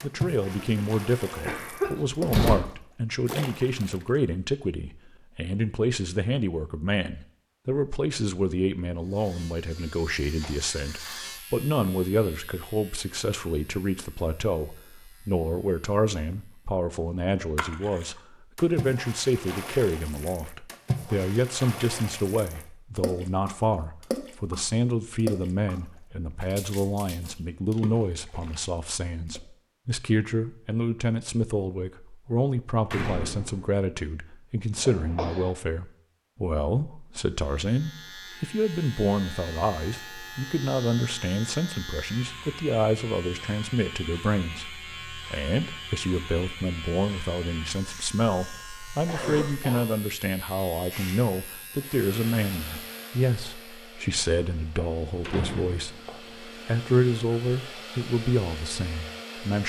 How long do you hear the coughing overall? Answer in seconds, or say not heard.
3 s.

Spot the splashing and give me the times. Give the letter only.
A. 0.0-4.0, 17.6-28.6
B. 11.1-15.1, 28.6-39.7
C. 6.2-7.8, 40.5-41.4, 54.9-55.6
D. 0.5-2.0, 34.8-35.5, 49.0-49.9
A.